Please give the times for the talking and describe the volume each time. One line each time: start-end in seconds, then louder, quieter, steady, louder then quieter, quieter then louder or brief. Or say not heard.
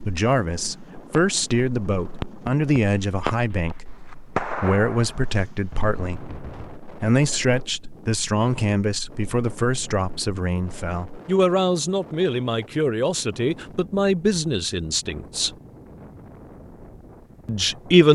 0.0-15.5 steady
17.4-18.1 brief.